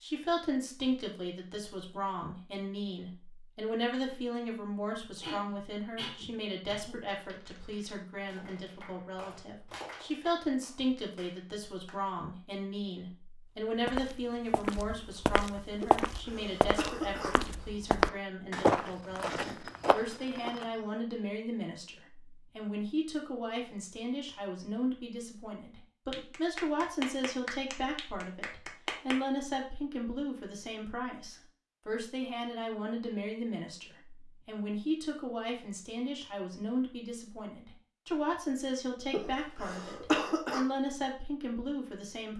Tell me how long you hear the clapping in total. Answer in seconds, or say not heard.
8 s.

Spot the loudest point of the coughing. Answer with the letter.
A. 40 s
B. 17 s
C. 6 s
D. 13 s
A.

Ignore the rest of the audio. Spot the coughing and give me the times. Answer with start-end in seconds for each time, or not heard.
5.2-7.0, 15.8-17.4, 39.1-40.6.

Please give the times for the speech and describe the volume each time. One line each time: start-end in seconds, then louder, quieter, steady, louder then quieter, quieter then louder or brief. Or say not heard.
0.0-42.3 steady.